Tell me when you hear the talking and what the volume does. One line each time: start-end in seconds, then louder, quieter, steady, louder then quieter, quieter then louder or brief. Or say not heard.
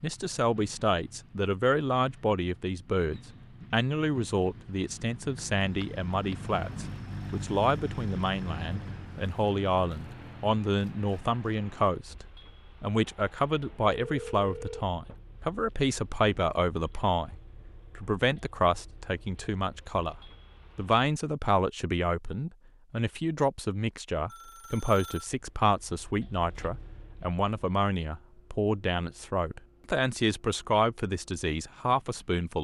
0.0-32.5 steady.